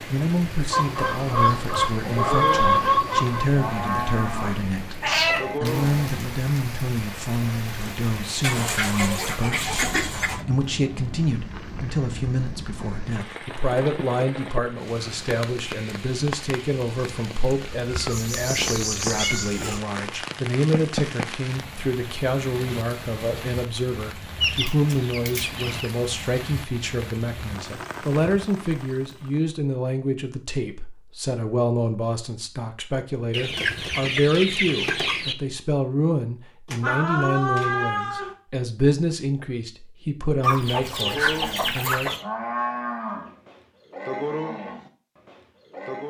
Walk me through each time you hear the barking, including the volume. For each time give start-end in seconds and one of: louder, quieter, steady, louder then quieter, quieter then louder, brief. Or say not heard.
not heard.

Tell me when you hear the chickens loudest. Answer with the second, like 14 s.
3 s.